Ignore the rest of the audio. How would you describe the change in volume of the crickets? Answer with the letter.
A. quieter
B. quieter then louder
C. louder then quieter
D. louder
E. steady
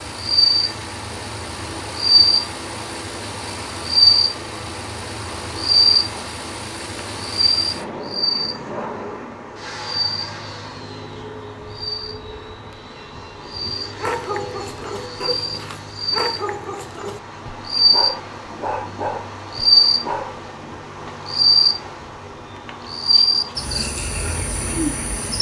B.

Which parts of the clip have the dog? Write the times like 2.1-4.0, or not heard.
13.8-20.8.